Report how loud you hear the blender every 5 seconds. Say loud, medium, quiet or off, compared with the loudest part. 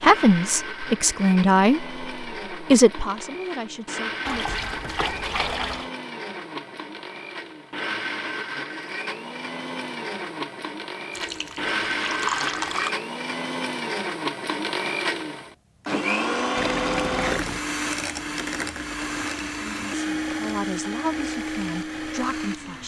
medium, medium, loud, loud, loud.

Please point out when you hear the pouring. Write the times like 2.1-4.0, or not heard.
4.2-5.9, 11.2-13.0, 16.6-17.6.